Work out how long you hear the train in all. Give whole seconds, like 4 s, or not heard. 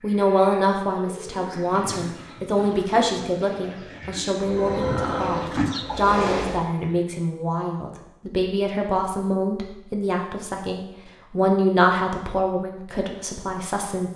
2 s.